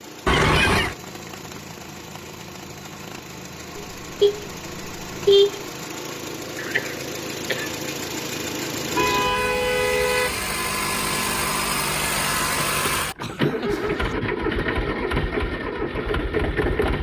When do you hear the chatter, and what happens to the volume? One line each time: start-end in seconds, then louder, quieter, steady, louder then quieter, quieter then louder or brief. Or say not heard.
not heard.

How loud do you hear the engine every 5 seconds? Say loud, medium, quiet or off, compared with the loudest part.
quiet, medium, loud, loud.